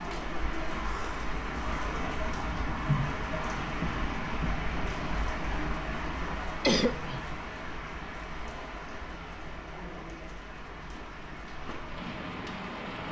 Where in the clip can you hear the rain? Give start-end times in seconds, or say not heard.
0.0-13.0.